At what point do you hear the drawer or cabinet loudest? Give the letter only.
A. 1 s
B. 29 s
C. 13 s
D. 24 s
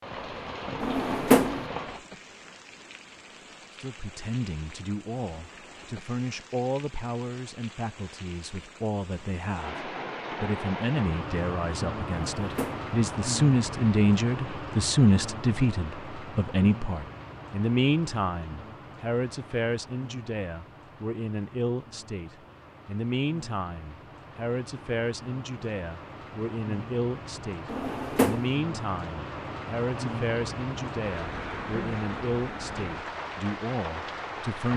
A.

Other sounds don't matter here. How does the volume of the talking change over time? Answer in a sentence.
The volume of the talking goes up, then down.